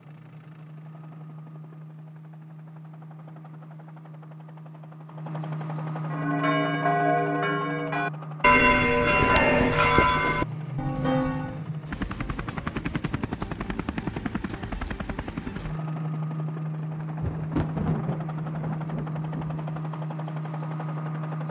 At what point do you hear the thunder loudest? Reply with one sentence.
The volume of the thunder peaks at 18 seconds.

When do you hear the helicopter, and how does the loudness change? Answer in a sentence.
You can hear the helicopter from 0.0 to 21.4 s, getting louder.